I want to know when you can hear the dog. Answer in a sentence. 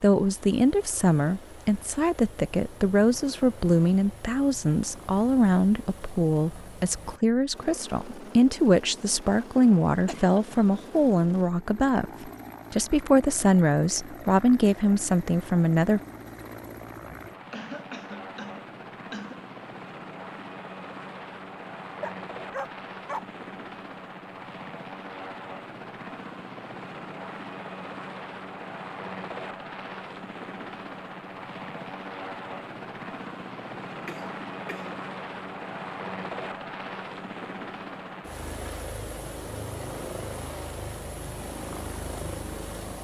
You can hear the dog from 22.0 to 23.2 s.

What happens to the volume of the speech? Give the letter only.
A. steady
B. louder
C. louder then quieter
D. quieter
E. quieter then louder
A.